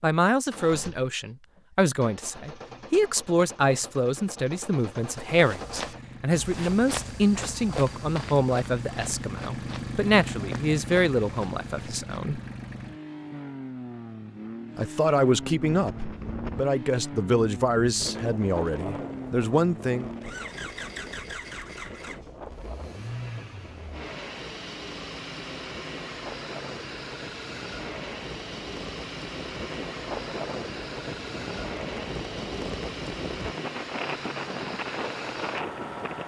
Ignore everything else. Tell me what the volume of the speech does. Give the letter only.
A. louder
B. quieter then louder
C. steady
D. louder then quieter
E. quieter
C.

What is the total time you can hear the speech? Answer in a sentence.
You can hear the speech for 18 seconds altogether.